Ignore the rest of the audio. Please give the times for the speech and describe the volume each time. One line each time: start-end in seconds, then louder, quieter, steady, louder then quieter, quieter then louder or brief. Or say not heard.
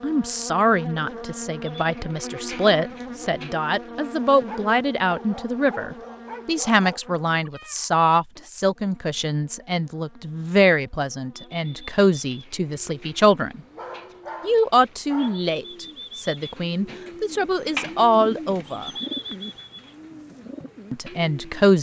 0.0-13.6 steady
14.4-18.9 quieter then louder
20.9-21.7 brief.